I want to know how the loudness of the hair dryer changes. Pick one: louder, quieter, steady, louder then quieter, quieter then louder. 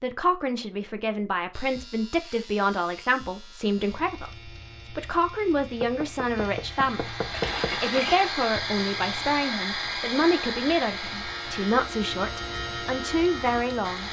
quieter.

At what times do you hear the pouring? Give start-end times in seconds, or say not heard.
7.3-8.3.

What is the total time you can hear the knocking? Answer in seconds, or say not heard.
2 s.